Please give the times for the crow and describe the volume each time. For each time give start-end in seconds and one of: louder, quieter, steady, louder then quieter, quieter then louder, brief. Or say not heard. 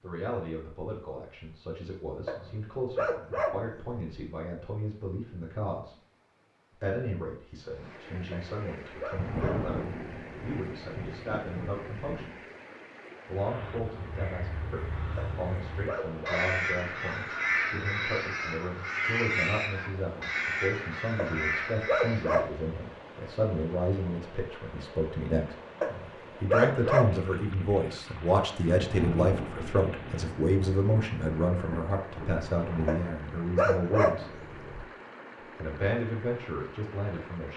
13.6-22.4 louder.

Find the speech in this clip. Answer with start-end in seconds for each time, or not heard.
0.0-6.0, 6.7-12.4, 13.2-25.6, 26.4-34.3, 35.4-37.5.